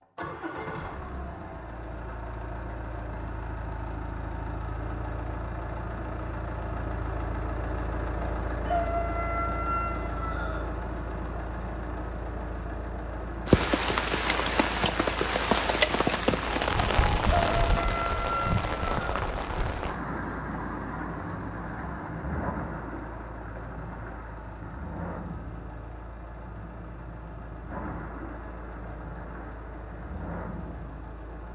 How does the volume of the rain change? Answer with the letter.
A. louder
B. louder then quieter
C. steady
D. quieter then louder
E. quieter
E.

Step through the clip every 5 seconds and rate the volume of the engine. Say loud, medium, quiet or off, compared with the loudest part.
loud, loud, loud, medium, medium, medium, medium.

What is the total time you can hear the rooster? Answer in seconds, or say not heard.
4 s.